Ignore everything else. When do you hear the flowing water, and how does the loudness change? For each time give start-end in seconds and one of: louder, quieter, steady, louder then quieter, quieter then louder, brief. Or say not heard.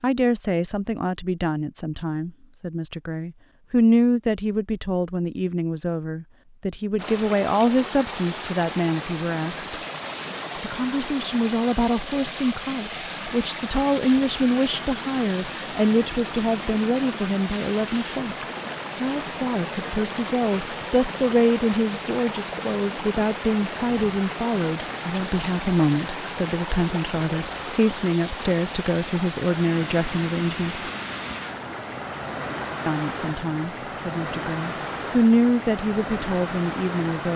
7.0-37.3 steady.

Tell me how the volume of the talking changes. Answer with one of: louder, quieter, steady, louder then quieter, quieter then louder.
steady.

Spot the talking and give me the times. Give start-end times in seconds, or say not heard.
0.0-9.7, 10.6-30.9, 32.9-37.3.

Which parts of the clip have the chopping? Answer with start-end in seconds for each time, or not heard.
not heard.